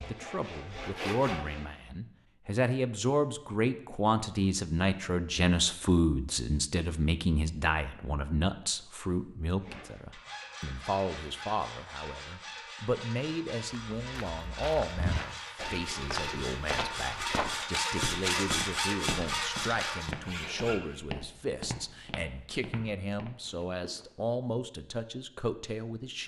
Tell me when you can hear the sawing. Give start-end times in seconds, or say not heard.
0.0-1.8, 9.6-21.0.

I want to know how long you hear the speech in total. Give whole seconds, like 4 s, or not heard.
26 s.